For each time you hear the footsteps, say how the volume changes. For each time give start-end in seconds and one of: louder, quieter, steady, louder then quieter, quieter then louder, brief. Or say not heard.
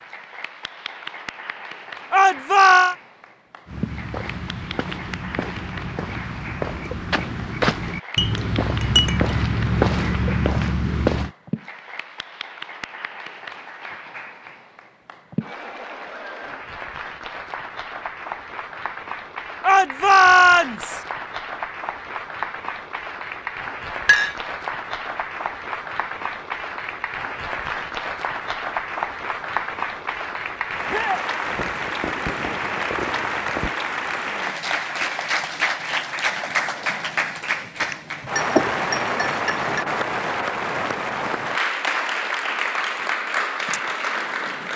3.6-11.3 louder.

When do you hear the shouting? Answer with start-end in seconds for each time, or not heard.
2.1-3.0, 19.6-21.0, 30.9-31.3.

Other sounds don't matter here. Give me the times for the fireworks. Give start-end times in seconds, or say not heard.
31.4-33.8.